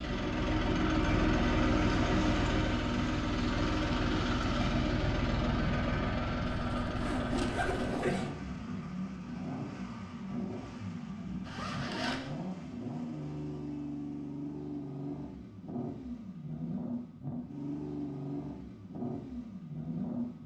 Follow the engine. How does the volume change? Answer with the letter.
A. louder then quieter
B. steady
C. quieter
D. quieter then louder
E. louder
C.